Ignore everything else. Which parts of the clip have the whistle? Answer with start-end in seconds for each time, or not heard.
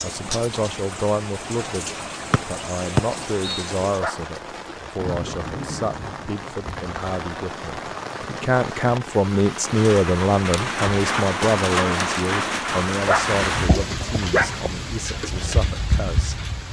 2.3-3.7.